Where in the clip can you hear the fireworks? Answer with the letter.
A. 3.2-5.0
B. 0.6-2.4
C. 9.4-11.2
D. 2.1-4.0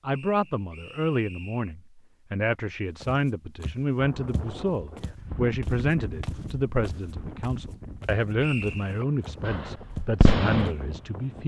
C.